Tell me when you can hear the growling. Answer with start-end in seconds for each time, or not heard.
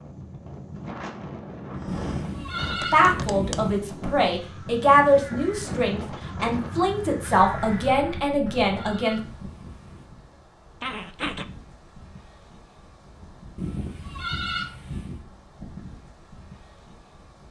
10.8-11.4.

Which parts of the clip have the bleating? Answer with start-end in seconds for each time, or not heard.
1.9-3.9, 8.1-10.1, 13.6-15.2.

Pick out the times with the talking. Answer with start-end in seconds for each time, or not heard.
2.6-9.2.